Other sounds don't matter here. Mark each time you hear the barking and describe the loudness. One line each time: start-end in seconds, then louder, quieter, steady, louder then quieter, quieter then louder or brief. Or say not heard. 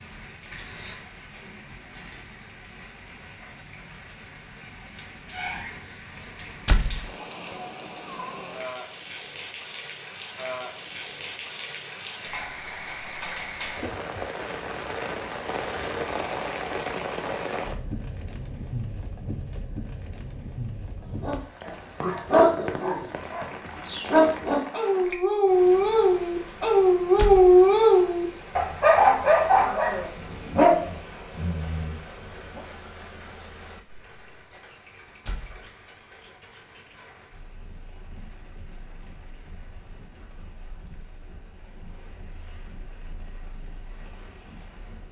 21.2-32.6 louder then quieter.